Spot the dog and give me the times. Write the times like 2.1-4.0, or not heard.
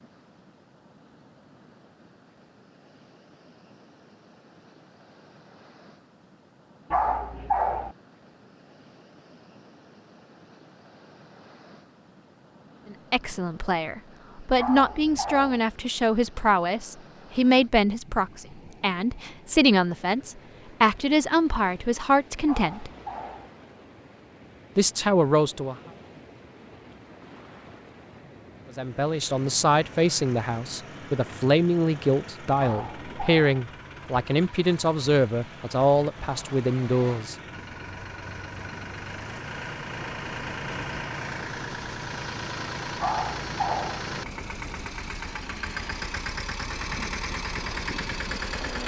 6.9-8.0, 14.6-15.6, 22.4-23.5, 32.5-33.5, 43.0-44.0.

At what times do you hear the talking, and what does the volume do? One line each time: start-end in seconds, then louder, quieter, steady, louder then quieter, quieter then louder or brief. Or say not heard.
12.9-22.9 steady
24.8-25.8 brief
28.8-37.4 steady.